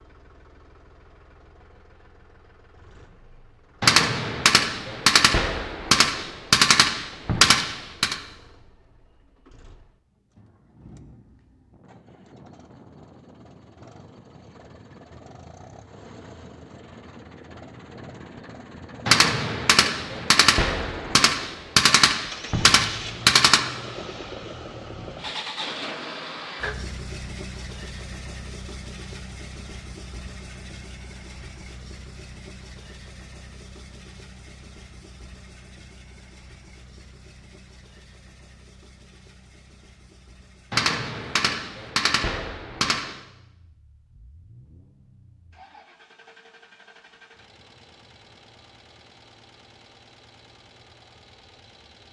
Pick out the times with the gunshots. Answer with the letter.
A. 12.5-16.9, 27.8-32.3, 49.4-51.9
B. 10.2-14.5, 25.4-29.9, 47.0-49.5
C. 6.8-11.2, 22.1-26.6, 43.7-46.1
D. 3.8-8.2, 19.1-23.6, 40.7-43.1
D.